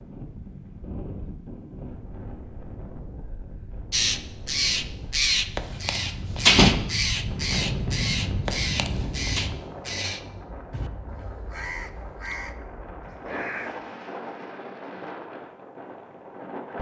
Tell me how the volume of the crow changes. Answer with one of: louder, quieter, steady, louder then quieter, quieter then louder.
quieter.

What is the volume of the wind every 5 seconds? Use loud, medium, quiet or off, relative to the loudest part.
medium, loud, medium, medium.